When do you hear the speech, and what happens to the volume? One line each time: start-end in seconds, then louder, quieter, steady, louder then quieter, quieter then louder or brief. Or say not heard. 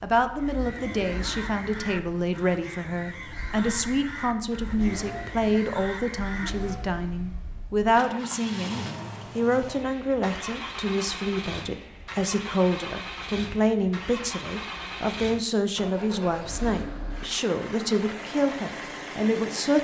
0.0-19.7 steady.